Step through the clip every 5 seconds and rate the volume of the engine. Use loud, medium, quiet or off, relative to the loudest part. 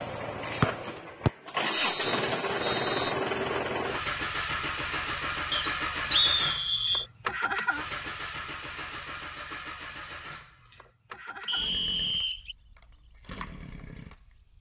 loud, loud, quiet.